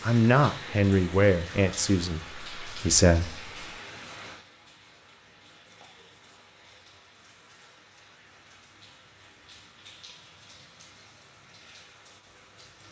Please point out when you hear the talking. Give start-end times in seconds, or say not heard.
0.0-3.5.